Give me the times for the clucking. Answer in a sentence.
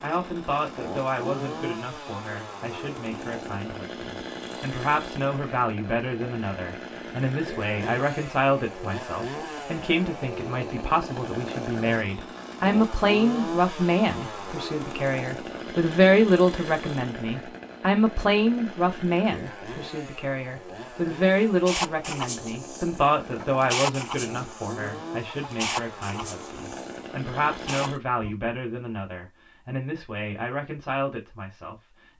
You can hear the clucking from 21.6 to 28.4 s.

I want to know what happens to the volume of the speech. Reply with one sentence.
The loudness of the speech goes up, then down.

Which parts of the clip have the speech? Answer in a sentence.
The speech can be heard from 0.0 to 31.8 s.